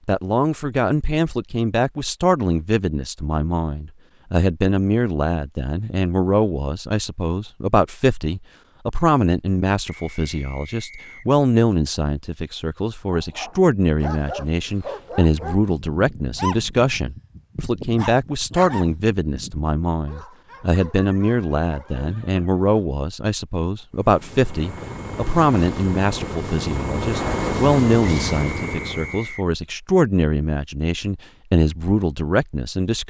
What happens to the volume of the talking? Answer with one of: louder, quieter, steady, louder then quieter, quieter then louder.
steady.